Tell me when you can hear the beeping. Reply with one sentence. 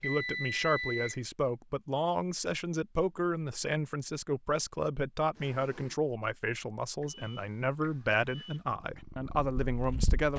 The beeping can be heard from 0.0 to 1.2 s and from 7.0 to 8.6 s.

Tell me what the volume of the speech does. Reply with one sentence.
The loudness of the speech stays about the same.